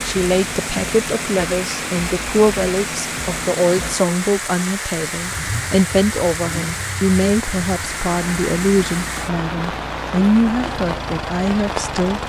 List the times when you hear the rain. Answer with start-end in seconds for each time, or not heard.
0.0-12.2.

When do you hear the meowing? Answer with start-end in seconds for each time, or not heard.
not heard.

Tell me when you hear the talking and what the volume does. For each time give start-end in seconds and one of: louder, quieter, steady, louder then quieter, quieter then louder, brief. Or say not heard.
0.0-12.2 steady.